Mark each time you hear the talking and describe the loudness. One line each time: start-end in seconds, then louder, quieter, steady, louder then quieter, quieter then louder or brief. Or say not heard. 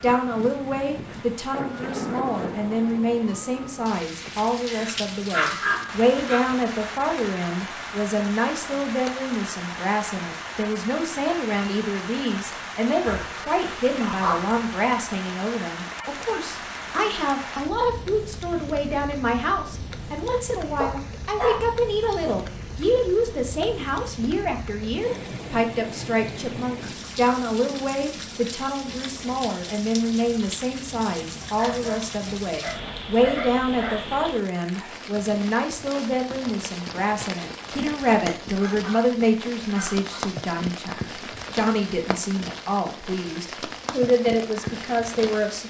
0.0-45.6 steady.